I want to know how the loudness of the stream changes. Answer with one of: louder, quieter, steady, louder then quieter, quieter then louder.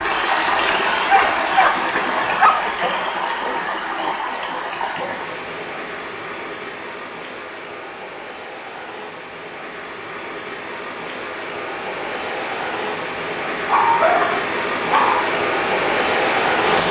quieter then louder.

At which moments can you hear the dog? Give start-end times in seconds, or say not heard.
1.1-2.8, 13.7-15.3.